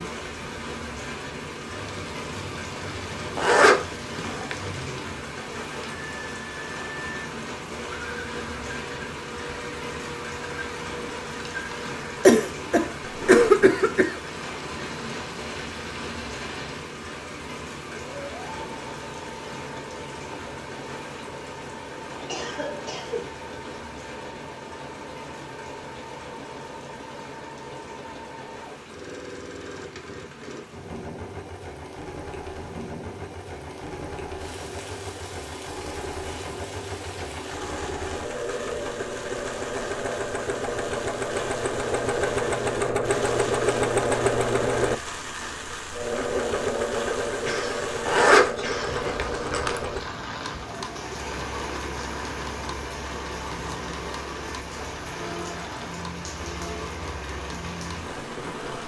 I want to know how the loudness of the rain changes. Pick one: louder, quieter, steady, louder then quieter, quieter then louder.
quieter then louder.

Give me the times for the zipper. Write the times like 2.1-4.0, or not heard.
3.4-4.6, 48.0-49.8.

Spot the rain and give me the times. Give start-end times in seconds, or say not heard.
0.0-58.8.